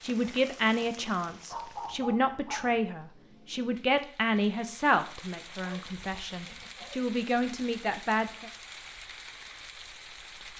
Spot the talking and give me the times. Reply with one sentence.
You can hear the talking from 0.0 to 8.5 s.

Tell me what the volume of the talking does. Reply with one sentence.
The loudness of the talking goes down, then up.